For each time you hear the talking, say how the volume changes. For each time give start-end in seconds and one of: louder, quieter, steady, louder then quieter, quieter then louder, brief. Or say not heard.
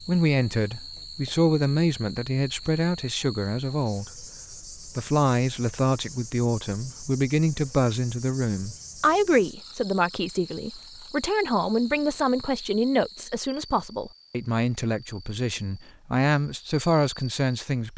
0.0-17.9 steady.